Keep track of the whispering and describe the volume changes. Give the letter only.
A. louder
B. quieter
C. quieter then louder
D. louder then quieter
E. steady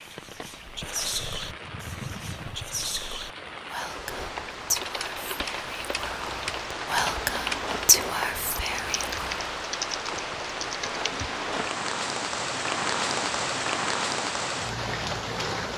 C.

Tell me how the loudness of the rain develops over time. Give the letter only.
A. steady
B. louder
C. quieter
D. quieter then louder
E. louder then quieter
B.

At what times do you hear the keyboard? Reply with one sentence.
The keyboard can be heard from 4.2 to 11.3 s.